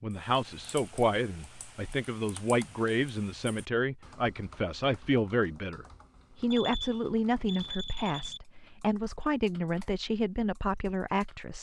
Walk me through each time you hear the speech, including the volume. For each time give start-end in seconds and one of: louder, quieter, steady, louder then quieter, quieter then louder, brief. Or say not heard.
0.0-11.5 steady.